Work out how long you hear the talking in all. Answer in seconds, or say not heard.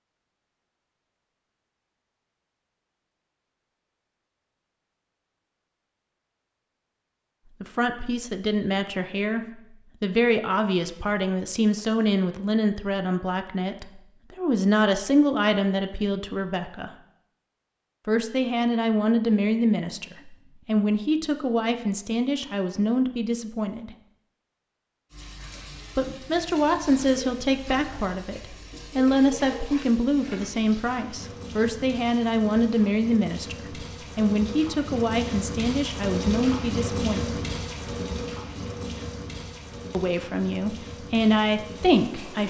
29 s.